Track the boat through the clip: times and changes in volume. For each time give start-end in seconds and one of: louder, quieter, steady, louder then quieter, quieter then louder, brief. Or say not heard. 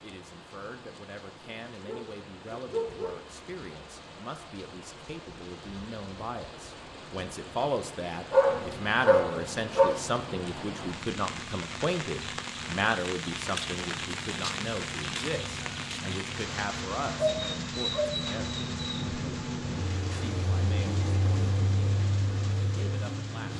8.4-23.5 louder.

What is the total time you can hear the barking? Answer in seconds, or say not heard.
5 s.